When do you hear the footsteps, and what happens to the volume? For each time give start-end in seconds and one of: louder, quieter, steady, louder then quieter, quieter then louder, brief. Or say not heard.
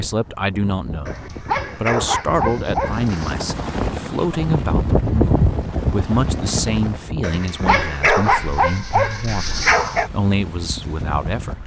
not heard.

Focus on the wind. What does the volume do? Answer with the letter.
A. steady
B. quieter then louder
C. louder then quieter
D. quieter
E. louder
C.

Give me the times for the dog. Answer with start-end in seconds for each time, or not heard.
1.1-3.4, 7.2-10.1.